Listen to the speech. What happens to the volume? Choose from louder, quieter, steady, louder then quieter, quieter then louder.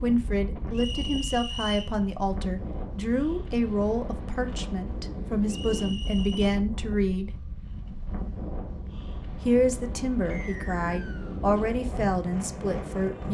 steady.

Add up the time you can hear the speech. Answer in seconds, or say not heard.
11 s.